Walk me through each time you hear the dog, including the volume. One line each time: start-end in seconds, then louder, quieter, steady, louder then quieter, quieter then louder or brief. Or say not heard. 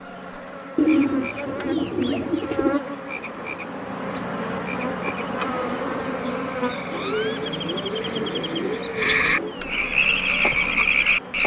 not heard.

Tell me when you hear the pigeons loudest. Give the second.
1 s.